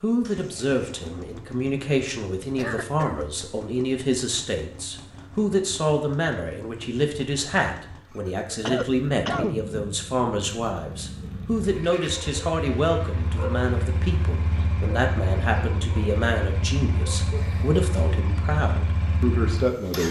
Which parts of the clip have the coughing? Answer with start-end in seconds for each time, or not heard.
2.5-3.2, 8.5-10.0, 17.3-18.2.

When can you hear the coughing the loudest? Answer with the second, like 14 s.
9 s.